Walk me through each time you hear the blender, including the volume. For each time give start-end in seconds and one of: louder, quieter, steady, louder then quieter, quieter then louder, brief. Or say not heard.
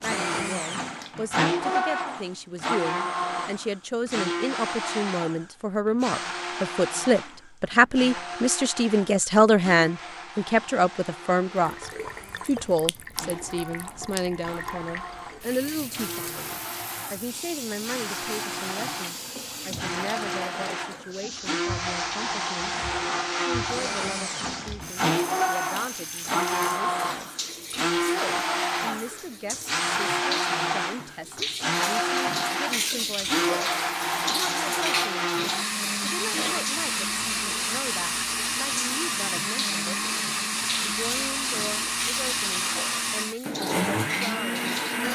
0.0-45.1 quieter then louder.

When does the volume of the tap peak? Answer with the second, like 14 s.
33 s.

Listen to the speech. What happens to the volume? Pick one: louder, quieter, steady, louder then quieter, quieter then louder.
quieter.